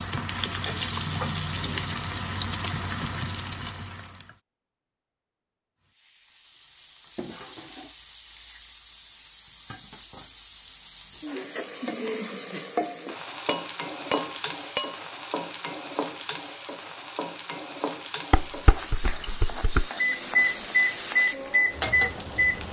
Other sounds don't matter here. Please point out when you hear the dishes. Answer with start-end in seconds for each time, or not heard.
0.7-1.8, 6.5-8.4, 13.4-14.9, 18.3-19.9.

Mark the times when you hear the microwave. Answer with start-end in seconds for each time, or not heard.
19.9-22.6.